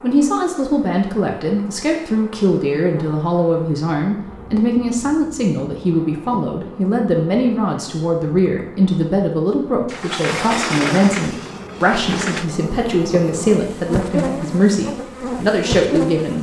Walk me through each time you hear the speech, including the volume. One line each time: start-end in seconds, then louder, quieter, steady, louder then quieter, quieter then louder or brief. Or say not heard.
0.0-16.3 steady.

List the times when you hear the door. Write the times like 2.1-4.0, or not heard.
9.8-12.4.